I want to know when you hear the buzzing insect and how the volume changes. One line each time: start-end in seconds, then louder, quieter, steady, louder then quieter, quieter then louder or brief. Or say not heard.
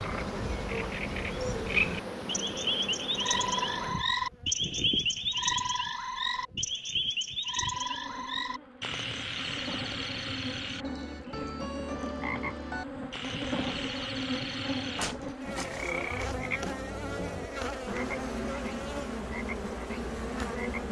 0.0-20.8 quieter then louder.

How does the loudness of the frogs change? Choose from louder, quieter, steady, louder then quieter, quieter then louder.
quieter.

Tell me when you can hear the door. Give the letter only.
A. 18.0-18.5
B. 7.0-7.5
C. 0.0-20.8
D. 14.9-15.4
D.